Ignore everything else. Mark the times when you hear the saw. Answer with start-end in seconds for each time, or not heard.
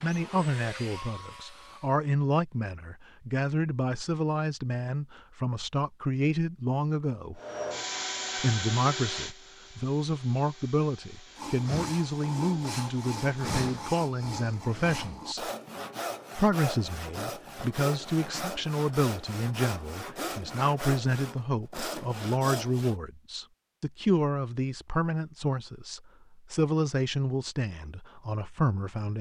11.3-22.9.